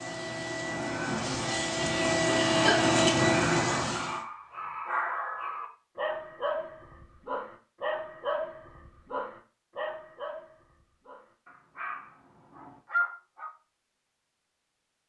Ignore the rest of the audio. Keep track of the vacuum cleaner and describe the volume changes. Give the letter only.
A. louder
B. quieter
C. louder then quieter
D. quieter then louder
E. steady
A.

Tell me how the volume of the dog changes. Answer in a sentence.
The loudness of the dog goes down, then up.